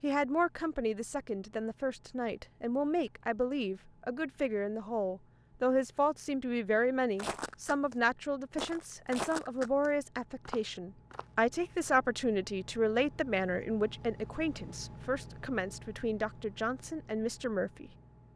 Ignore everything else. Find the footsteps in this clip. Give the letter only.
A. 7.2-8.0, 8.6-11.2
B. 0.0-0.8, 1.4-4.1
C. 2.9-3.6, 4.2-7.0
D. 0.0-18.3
A.